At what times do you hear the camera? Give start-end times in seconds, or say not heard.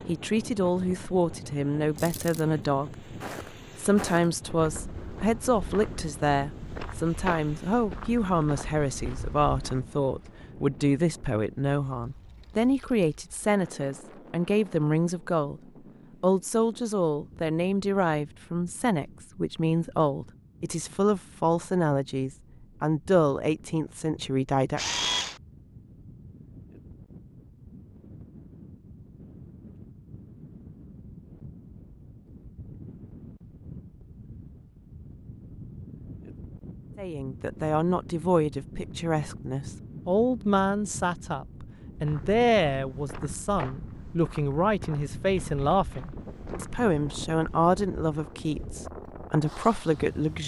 1.9-2.5, 24.8-25.4, 45.4-46.1.